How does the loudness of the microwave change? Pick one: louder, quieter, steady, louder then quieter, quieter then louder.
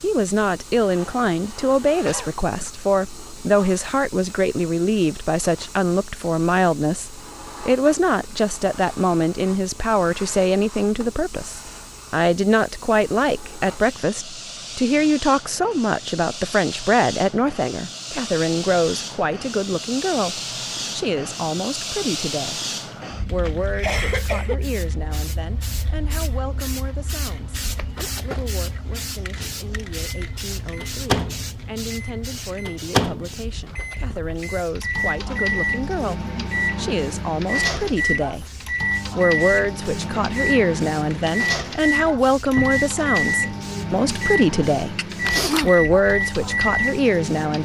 steady.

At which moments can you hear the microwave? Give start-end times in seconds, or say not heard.
29.4-47.6.